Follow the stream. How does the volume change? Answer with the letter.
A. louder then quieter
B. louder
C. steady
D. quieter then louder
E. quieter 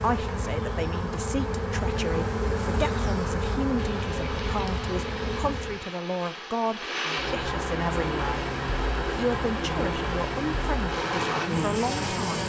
B.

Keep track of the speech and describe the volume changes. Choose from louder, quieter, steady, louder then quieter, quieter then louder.
steady.